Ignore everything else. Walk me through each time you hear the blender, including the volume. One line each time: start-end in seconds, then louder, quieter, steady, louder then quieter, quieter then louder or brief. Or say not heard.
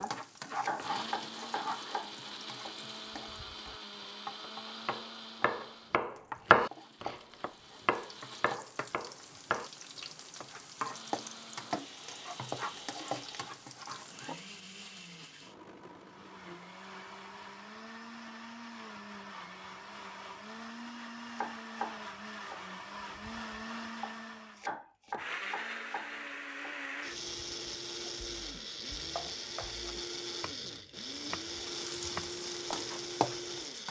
0.0-8.6 quieter
10.9-33.8 louder.